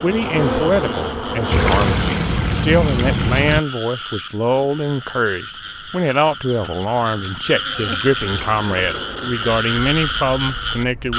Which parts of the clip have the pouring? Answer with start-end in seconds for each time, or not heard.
1.5-3.6, 7.7-9.0.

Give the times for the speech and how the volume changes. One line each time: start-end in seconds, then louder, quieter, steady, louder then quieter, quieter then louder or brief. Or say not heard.
0.0-11.1 steady.